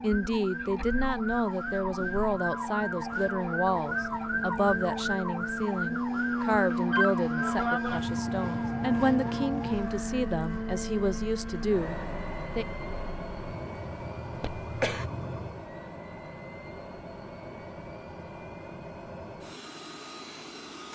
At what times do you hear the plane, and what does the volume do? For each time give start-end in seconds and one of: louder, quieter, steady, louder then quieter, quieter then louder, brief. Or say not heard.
0.0-20.9 louder then quieter.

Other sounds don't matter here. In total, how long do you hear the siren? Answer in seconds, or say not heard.
16 s.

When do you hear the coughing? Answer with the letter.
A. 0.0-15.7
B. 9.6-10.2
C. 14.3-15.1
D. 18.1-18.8
C.